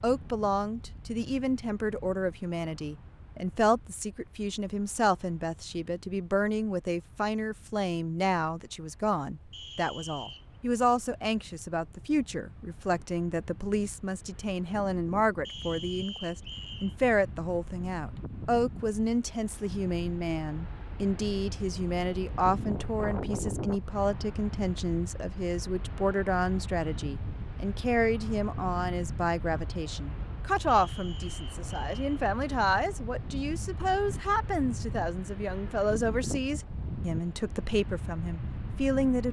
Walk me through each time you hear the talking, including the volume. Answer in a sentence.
You can hear the talking from 0.0 to 39.2 s, at a steady volume.